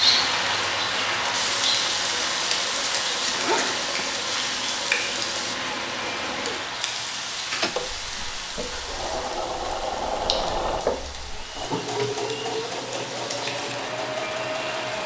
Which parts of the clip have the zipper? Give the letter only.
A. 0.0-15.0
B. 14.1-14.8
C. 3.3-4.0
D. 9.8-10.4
C.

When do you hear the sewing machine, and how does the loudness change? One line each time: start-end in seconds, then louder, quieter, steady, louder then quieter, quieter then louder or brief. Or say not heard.
0.0-15.0 louder.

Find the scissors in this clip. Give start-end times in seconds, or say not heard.
not heard.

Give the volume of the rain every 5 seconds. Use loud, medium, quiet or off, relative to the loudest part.
loud, medium, medium.